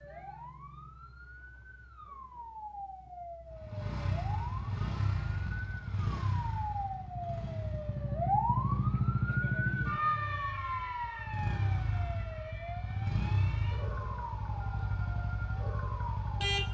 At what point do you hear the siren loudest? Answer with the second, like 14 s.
9 s.